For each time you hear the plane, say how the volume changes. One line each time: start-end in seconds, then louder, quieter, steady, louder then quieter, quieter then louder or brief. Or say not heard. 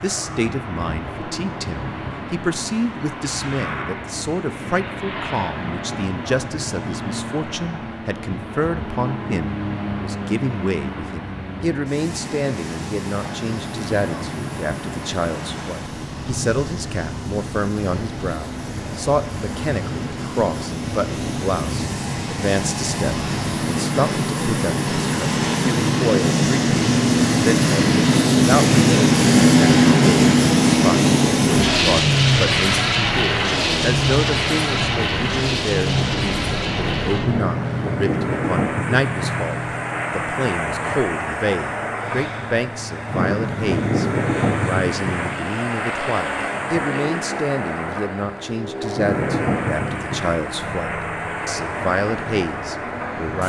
0.0-53.4 louder then quieter.